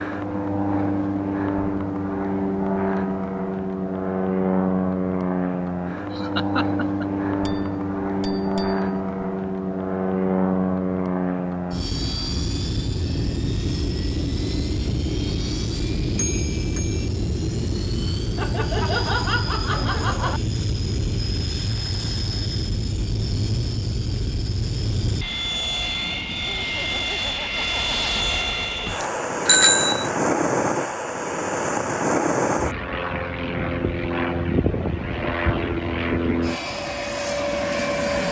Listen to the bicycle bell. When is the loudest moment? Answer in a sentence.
The volume of the bicycle bell peaks at 30 seconds.